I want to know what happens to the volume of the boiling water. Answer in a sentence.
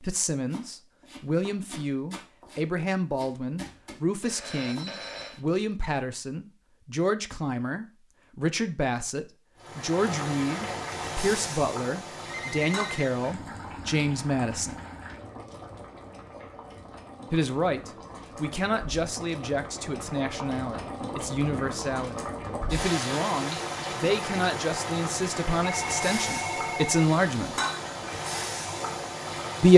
The volume of the boiling water goes down, then up.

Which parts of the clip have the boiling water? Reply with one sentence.
The boiling water can be heard from 9.6 to 29.7 s.